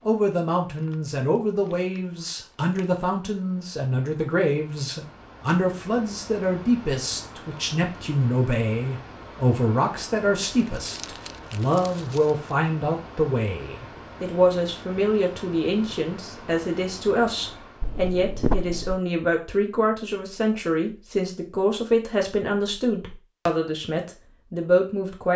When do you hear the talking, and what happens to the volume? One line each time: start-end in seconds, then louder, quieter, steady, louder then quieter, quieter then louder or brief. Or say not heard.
0.1-25.3 steady.